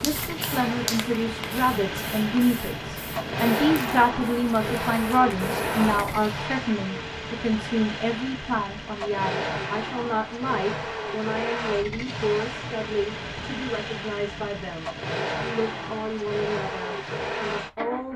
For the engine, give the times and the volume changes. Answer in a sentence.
The engine can be heard from 0.0 to 18.1 s, at a steady volume.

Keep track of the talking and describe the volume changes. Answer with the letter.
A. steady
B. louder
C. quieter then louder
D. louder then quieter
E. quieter
E.